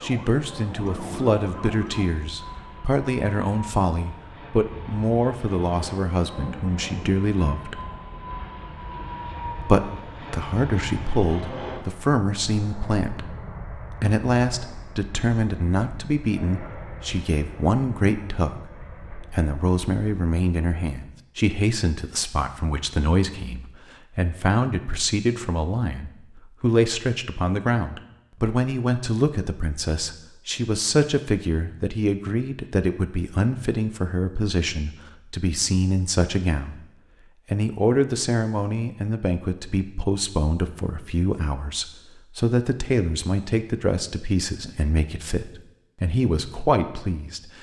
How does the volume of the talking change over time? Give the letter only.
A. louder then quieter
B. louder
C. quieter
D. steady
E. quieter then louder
D.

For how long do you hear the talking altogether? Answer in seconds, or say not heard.
45 s.